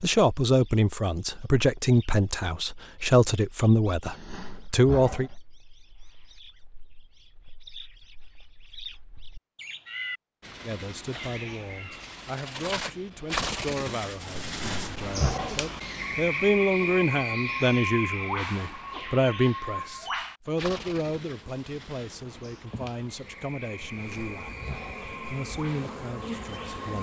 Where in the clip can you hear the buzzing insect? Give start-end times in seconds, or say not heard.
21.2-26.9.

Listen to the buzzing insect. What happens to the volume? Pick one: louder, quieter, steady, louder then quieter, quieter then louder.
louder.